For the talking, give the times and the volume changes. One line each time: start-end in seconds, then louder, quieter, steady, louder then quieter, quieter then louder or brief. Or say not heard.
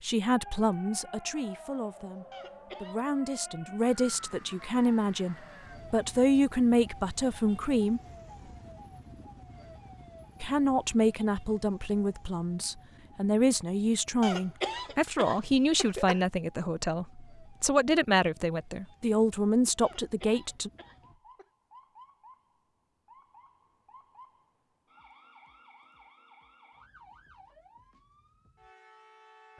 0.0-8.0 louder
10.4-20.7 steady.